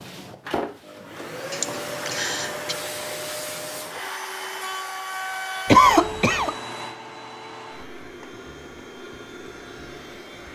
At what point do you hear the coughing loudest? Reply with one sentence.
The volume of the coughing peaks at 6 seconds.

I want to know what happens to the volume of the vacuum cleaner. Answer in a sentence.
The volume of the vacuum cleaner goes down.